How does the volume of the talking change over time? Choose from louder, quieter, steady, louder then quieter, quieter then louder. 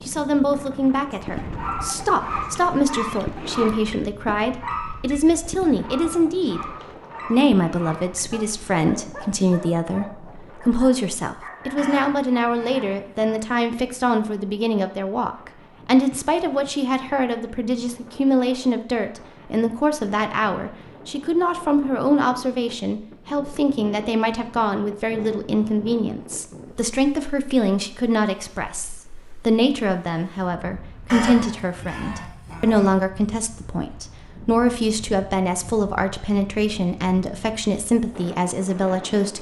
steady.